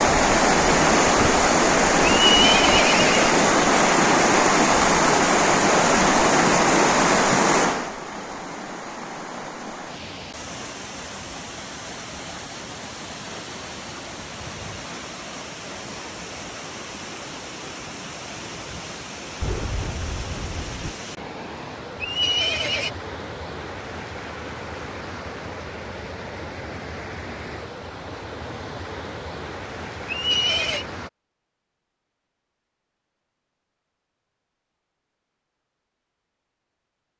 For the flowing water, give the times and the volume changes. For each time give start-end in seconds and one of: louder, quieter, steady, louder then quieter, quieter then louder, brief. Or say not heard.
0.0-31.1 quieter.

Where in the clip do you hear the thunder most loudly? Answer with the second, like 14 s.
20 s.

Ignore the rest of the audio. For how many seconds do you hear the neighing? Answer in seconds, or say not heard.
3 s.